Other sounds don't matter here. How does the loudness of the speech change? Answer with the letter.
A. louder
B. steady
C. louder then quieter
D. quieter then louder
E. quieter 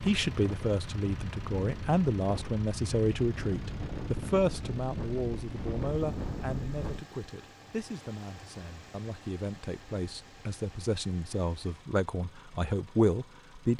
D.